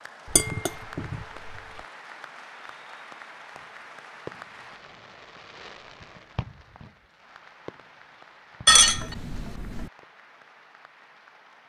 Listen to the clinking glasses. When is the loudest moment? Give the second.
9 s.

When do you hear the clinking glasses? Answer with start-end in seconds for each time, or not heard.
0.3-1.6, 8.7-9.9.